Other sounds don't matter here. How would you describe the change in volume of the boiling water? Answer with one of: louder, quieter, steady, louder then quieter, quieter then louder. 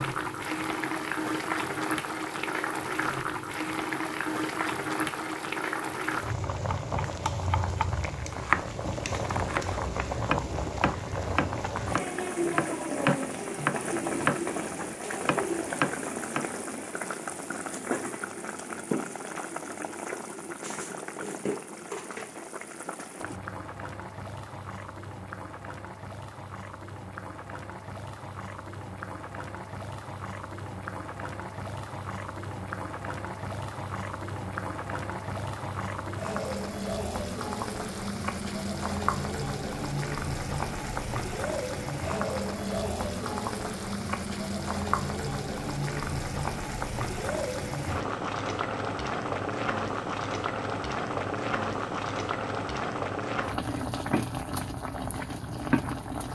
quieter then louder.